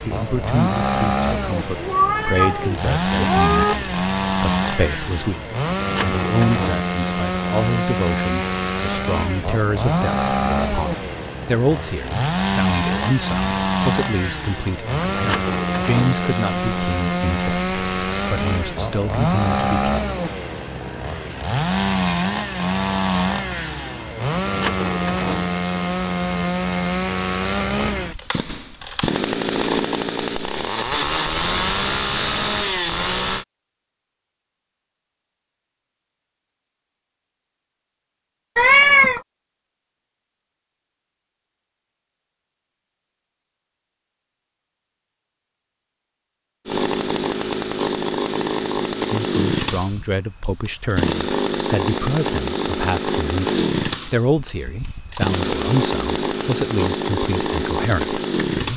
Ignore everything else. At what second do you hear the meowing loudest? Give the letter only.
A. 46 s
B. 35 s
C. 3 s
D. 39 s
D.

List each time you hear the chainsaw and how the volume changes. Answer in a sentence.
You can hear the chainsaw from 0.0 to 33.5 s, at a steady volume; and from 46.6 to 58.7 s, at a steady volume.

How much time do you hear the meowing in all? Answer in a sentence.
The meowing can be heard for 3 seconds in total.